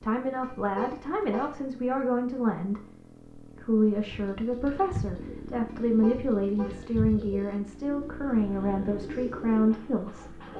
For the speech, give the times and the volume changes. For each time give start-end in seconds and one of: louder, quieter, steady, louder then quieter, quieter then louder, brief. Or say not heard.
0.0-10.4 steady.